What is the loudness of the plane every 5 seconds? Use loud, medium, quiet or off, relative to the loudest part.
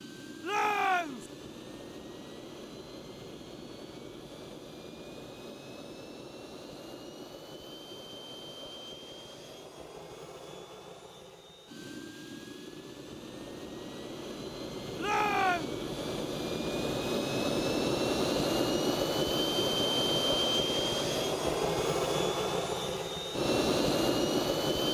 quiet, quiet, quiet, loud, loud.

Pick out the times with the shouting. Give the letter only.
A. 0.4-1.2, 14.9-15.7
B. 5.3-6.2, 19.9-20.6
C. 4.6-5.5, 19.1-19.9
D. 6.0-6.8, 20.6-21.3
A.